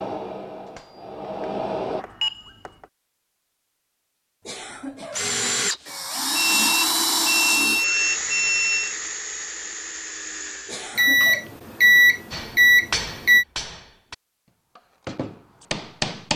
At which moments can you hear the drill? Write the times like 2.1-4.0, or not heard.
5.1-10.9.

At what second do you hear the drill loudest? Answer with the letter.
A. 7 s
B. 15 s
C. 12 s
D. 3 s
A.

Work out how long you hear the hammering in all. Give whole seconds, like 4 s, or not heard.
6 s.